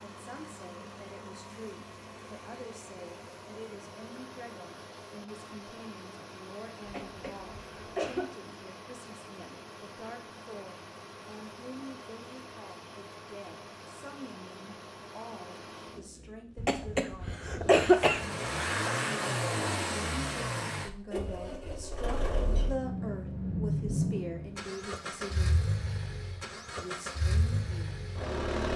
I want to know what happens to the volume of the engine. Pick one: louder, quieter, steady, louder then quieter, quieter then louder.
louder.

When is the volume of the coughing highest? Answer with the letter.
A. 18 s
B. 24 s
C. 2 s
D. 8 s
A.